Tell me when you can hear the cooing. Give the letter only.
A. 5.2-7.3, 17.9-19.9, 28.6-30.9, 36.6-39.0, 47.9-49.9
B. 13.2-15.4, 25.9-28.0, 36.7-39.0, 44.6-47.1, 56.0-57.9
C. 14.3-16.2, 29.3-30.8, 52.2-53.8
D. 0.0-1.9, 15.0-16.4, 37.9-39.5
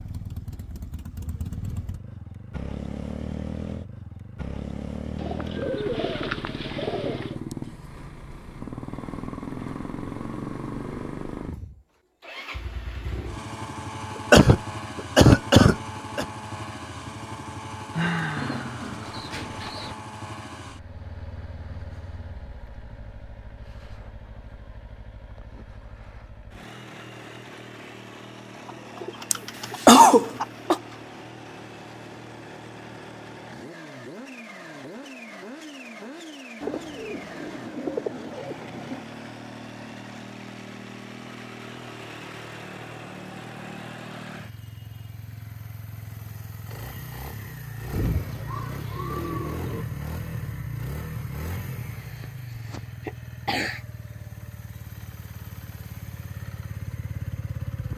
A.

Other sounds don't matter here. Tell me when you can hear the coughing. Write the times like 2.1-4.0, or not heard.
14.3-16.2, 29.3-30.8, 52.2-53.8.